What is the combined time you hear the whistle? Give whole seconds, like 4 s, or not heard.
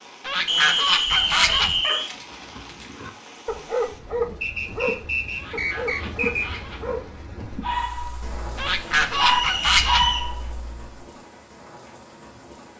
5 s.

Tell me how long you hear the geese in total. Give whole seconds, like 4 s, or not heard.
5 s.